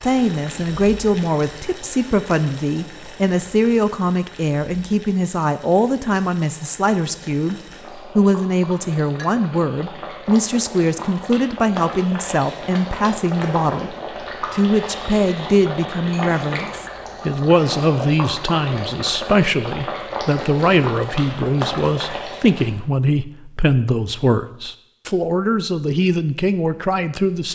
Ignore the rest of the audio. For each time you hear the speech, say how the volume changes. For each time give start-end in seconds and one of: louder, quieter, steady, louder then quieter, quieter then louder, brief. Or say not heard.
0.0-27.5 steady.